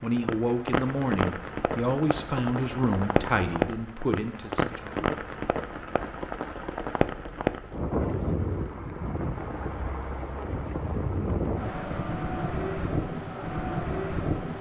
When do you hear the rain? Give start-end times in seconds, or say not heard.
0.0-14.5.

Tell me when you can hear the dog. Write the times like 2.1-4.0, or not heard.
not heard.